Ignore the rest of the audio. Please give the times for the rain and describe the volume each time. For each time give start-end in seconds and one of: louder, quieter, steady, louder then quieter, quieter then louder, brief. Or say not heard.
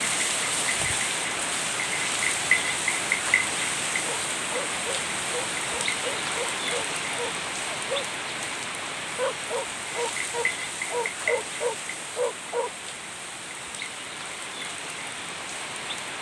0.0-16.1 quieter.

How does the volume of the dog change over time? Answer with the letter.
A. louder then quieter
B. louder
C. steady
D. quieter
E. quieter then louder
B.